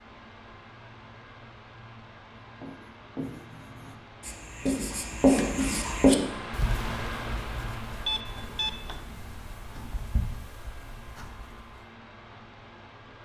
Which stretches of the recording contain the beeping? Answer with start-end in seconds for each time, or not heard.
8.1-9.1.